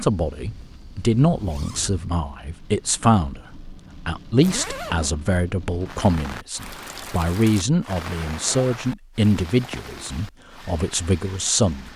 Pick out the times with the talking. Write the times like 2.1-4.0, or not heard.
0.0-11.9.